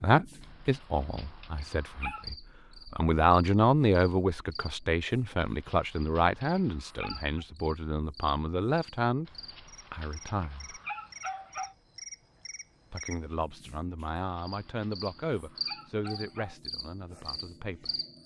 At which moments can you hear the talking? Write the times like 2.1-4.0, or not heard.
0.0-9.3, 9.9-10.8, 12.9-17.9.